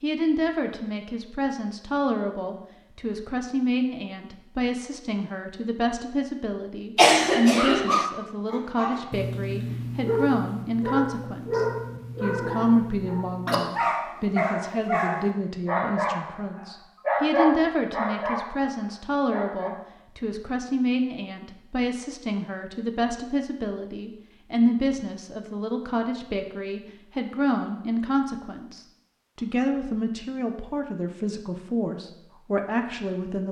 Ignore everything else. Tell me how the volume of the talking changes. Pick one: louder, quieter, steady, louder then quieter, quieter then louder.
steady.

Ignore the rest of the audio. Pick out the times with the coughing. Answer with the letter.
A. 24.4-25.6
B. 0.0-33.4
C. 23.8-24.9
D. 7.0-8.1
D.